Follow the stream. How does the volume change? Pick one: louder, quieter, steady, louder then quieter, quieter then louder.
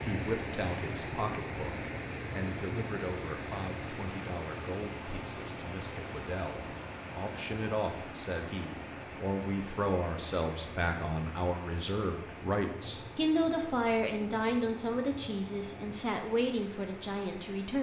quieter.